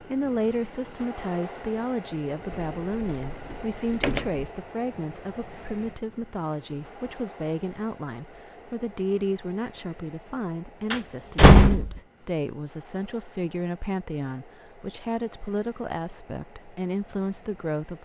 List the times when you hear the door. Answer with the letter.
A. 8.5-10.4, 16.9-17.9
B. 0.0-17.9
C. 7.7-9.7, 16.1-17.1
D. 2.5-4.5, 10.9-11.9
D.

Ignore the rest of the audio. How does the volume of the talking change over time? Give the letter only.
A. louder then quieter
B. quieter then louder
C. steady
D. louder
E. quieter
C.